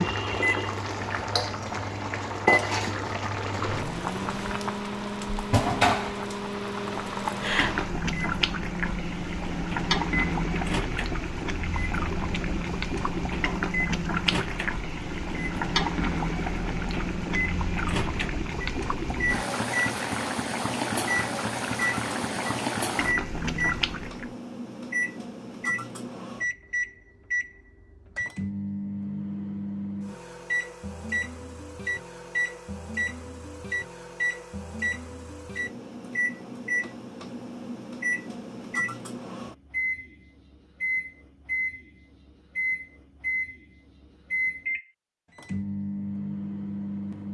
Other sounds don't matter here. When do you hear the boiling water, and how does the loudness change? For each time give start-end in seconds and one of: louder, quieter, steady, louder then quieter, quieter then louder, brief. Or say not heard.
0.0-24.3 steady.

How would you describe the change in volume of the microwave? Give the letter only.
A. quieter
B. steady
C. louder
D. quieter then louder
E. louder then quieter
B.